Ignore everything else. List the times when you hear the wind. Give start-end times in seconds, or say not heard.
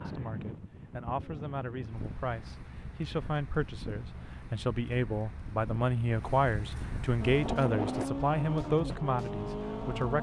0.0-8.1.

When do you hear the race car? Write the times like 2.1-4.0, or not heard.
7.2-10.1.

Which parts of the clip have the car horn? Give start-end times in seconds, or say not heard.
not heard.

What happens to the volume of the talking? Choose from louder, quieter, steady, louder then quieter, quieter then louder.
louder.